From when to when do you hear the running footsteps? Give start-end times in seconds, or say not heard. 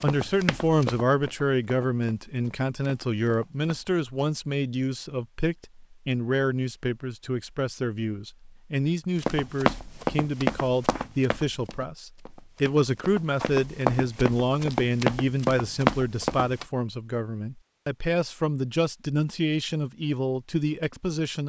0.0-3.9, 9.2-16.6.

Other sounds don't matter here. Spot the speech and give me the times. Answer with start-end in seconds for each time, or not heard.
0.0-21.4.